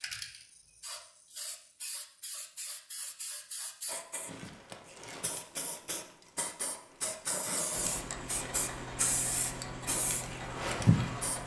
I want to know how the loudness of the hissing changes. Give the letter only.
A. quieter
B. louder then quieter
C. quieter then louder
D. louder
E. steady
D.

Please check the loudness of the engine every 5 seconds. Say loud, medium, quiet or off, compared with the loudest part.
off, loud, loud.